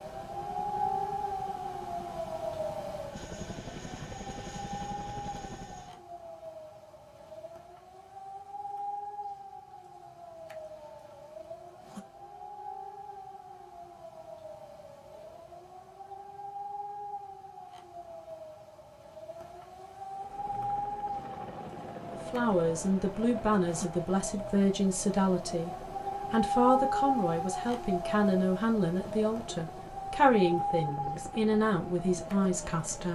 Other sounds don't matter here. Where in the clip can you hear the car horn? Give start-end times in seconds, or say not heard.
not heard.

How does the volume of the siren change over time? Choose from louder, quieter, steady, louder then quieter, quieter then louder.
quieter then louder.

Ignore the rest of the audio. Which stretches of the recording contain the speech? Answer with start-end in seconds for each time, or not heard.
22.1-25.7, 26.3-33.0.